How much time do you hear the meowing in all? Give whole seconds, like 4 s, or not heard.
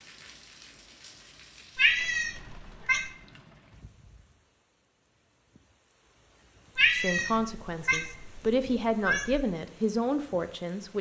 4 s.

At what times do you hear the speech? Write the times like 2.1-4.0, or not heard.
6.9-10.9.